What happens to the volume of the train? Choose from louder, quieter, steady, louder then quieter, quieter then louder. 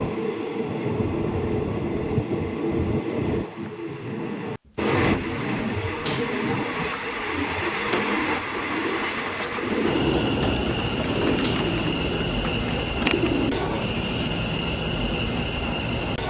steady.